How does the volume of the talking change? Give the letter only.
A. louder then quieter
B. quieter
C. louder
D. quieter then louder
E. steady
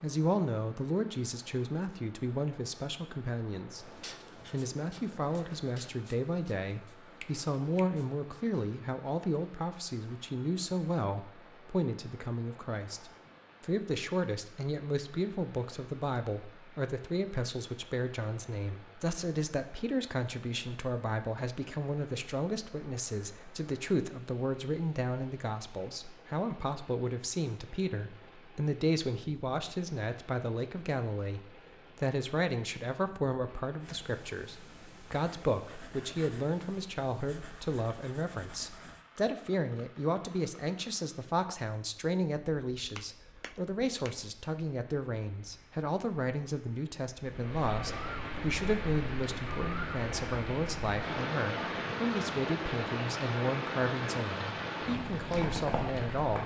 E.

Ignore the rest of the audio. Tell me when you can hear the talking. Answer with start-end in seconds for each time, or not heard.
0.0-3.9, 4.5-56.4.